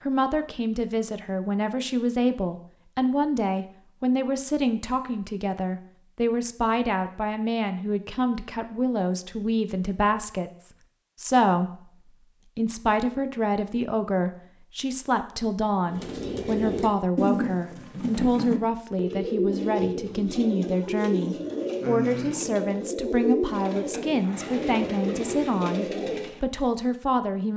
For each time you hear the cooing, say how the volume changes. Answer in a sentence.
The cooing can be heard from 15.8 to 26.4 s, at a steady volume.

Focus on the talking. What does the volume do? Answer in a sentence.
The volume of the talking stays about the same.